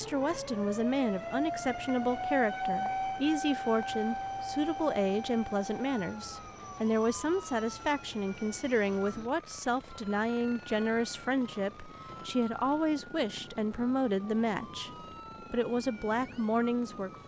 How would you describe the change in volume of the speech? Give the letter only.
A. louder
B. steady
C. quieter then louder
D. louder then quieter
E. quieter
B.